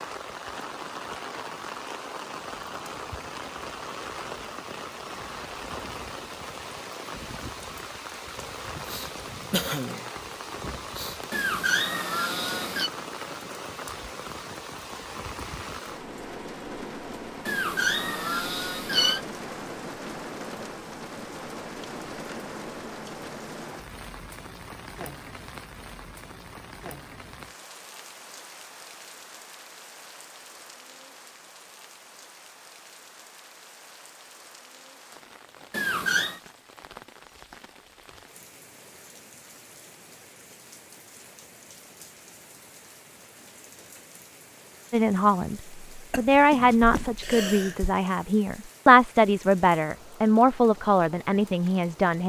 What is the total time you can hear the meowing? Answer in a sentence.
You can hear the meowing for 4 seconds altogether.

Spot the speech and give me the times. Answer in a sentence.
You can hear the speech from 44.9 to 52.2 s.